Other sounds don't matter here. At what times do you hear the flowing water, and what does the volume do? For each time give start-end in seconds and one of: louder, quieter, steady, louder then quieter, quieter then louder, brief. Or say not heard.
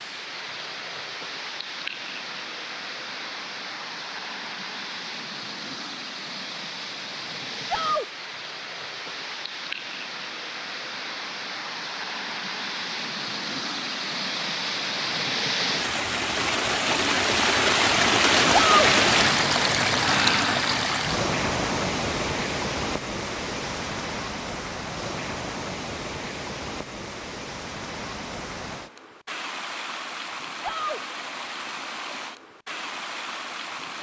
0.0-33.9 louder then quieter.